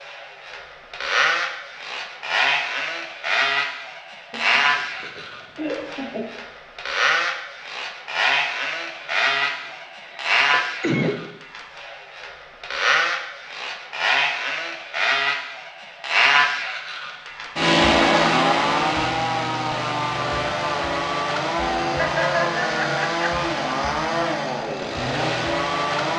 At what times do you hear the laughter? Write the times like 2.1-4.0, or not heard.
4.3-6.3, 9.0-11.2, 21.9-23.4.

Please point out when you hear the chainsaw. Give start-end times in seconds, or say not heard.
0.0-26.1.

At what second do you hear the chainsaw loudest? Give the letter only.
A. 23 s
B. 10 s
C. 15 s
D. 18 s
D.